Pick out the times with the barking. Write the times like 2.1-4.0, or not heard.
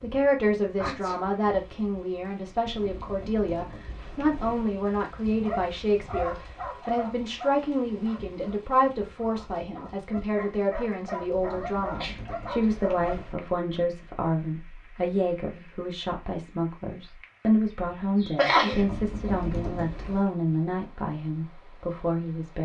5.4-13.2.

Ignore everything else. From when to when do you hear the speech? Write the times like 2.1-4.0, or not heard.
0.0-22.6.